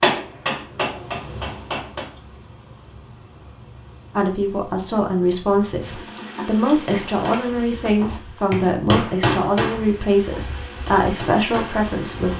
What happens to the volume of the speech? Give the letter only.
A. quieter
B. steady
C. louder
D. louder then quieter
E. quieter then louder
B.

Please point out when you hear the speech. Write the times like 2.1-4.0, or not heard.
4.2-12.3.